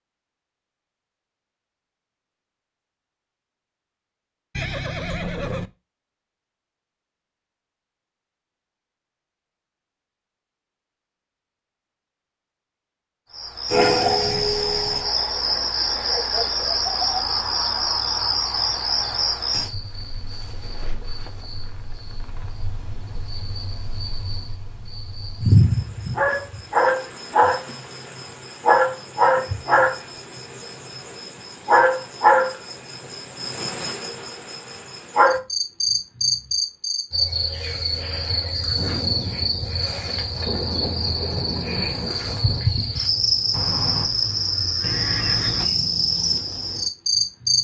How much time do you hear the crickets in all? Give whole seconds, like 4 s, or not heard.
34 s.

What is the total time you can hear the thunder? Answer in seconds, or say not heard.
4 s.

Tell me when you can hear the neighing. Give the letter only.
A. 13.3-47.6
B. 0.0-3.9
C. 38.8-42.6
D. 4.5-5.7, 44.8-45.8
D.